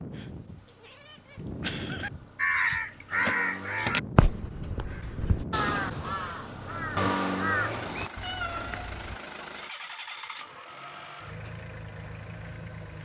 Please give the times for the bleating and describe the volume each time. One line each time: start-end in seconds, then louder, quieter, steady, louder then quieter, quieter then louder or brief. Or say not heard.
not heard.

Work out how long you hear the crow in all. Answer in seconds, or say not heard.
6 s.